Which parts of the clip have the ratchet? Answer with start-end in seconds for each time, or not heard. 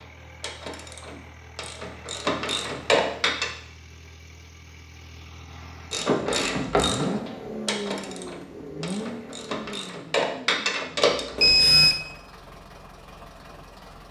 0.0-3.5, 5.9-11.7.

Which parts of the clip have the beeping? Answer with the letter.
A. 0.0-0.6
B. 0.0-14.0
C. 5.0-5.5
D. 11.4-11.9
D.